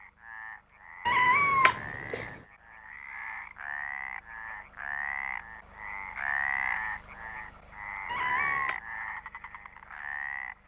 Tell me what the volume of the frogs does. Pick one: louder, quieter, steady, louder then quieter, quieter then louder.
louder.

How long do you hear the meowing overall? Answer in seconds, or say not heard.
2 s.